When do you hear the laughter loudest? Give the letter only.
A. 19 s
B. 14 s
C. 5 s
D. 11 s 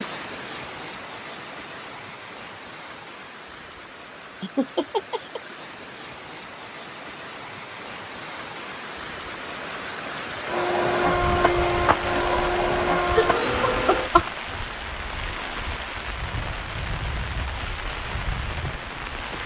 B.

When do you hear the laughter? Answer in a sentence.
The laughter can be heard from 4.4 to 5.4 s and from 13.2 to 14.3 s.